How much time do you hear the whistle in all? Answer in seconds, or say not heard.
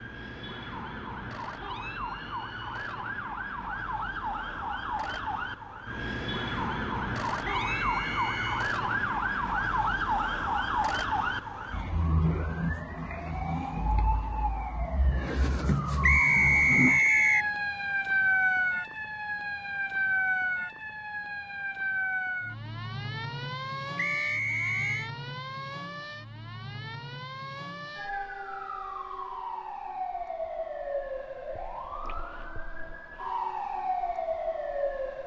4 s.